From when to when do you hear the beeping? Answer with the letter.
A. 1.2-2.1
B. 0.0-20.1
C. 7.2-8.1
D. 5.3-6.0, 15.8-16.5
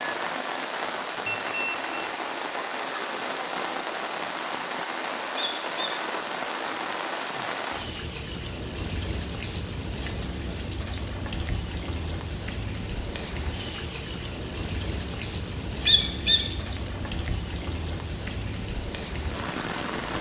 A.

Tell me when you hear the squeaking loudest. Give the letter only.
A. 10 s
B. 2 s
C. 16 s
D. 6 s
C.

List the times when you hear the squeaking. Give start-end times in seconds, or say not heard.
5.3-6.0, 15.8-16.5.